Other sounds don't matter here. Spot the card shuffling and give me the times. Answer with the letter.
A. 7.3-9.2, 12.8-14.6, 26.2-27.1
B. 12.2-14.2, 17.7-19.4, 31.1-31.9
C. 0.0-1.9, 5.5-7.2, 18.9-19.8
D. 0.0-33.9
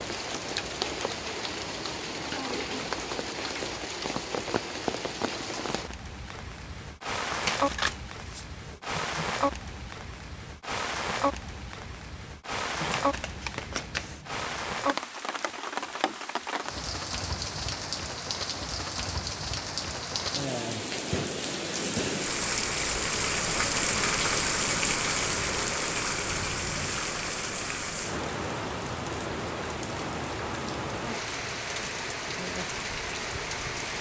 A.